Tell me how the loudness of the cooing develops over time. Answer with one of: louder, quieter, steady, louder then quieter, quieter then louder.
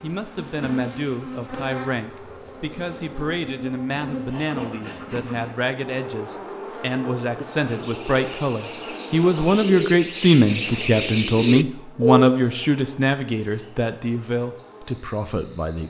louder.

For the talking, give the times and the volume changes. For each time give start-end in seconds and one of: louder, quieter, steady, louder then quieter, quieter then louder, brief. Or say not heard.
0.0-15.8 louder then quieter.